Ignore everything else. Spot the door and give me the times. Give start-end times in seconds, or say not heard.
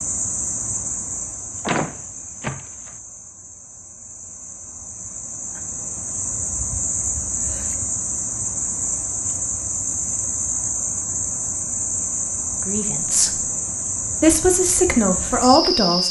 1.6-2.9.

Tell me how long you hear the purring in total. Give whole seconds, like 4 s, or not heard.
not heard.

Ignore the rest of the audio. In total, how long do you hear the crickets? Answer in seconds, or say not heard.
16 s.